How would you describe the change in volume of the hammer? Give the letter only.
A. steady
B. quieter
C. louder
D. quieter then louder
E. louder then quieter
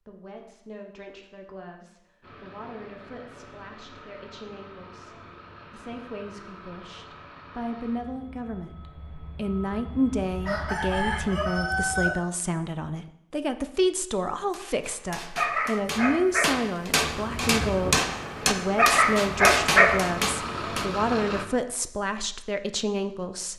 C.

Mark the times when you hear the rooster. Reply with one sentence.
You can hear the rooster from 10.4 to 12.2 s.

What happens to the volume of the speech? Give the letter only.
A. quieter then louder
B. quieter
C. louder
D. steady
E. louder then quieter
C.